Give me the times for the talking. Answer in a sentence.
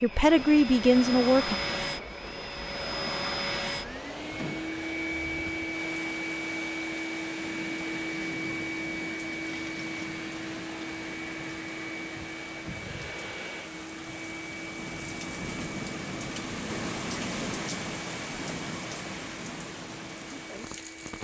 The talking can be heard from 0.0 to 1.6 s.